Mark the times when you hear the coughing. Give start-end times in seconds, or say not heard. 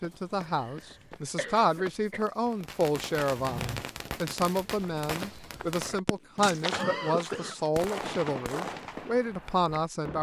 0.5-2.2, 6.7-7.5.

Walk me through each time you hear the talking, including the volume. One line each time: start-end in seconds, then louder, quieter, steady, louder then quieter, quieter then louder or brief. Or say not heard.
0.0-10.1 steady.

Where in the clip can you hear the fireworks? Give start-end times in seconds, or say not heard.
2.5-6.5, 7.8-10.1.